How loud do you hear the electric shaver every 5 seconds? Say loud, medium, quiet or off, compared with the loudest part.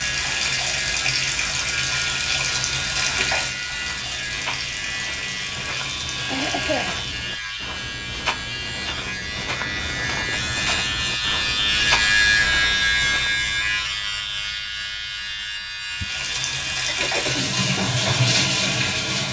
medium, medium, loud, medium.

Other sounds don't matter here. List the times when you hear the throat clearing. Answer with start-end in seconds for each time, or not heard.
6.3-7.0, 16.0-17.6.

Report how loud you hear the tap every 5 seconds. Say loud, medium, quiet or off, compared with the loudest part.
loud, medium, off, loud.